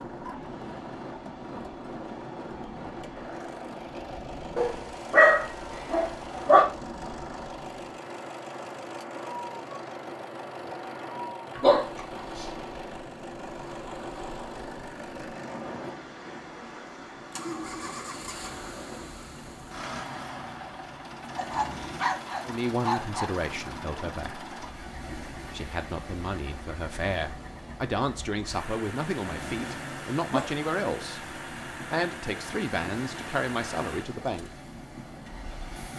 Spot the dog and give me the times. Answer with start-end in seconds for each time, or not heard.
4.5-6.7, 11.6-12.4, 21.4-23.3, 29.2-30.6.